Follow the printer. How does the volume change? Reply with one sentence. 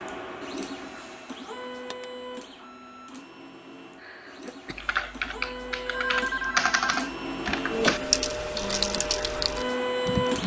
The loudness of the printer goes down, then up.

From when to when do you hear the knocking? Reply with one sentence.
The knocking can't be heard in this clip.